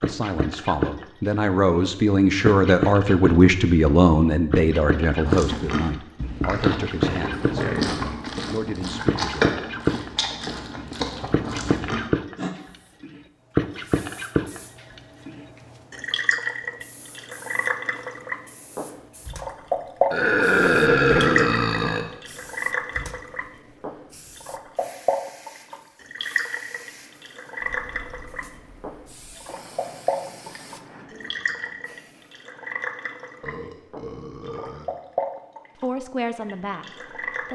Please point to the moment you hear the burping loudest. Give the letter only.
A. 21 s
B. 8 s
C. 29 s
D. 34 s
A.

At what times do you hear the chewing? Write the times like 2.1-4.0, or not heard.
5.2-12.6.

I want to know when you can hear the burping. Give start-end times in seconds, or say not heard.
7.0-8.0, 20.1-22.1, 33.4-34.9.